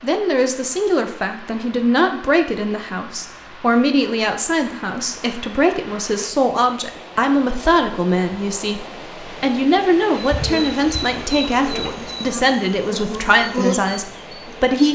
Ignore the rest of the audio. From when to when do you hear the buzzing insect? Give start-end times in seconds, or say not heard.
10.2-14.8.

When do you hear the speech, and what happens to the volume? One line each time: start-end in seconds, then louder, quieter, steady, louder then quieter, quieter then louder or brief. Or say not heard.
0.0-14.9 steady.